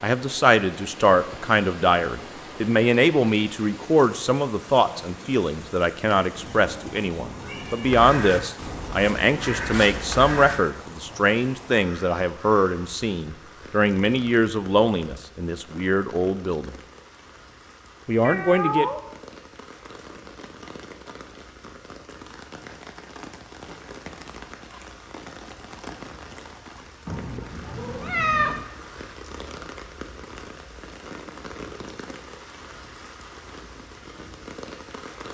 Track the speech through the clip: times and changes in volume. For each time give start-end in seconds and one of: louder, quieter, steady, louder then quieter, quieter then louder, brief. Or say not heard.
0.0-16.8 steady
18.1-18.9 brief.